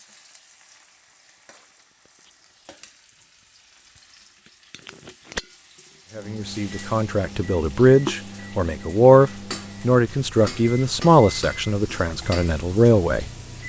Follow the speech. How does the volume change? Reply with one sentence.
The loudness of the speech goes up, then down.